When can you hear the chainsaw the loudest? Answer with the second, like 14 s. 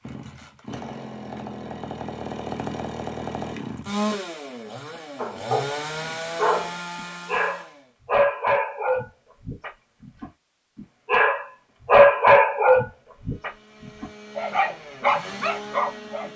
4 s.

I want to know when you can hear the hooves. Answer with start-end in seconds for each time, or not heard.
not heard.